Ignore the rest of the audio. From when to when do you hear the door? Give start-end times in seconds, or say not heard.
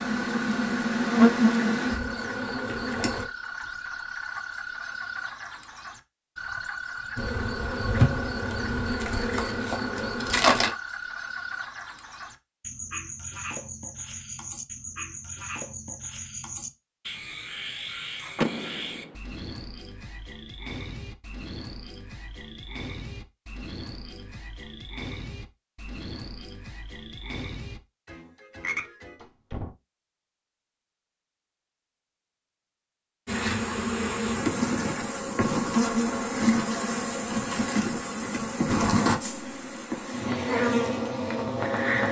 18.4-19.1, 29.2-29.8.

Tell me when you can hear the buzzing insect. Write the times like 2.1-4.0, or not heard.
0.0-3.2, 7.2-10.7, 33.2-42.0.